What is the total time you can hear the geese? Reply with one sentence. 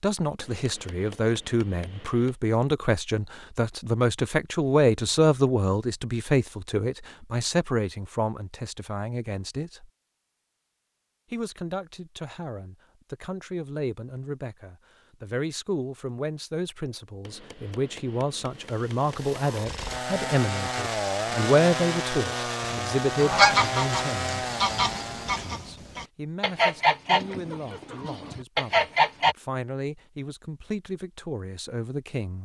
The geese can be heard for 7 seconds in total.